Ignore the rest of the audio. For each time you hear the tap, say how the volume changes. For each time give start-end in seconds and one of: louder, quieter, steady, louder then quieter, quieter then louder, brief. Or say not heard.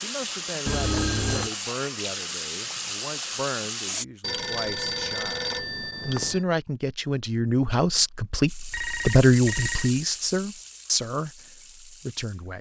0.0-4.0 steady
8.4-12.5 quieter.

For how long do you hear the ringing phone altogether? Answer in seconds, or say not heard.
4 s.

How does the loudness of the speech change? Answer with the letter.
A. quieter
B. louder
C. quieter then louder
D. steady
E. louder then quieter
E.